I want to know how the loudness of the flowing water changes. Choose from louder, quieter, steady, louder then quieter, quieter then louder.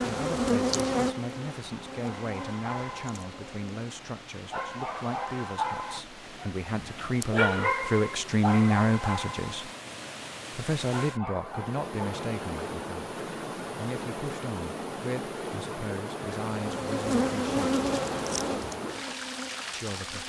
louder.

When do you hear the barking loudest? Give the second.
8 s.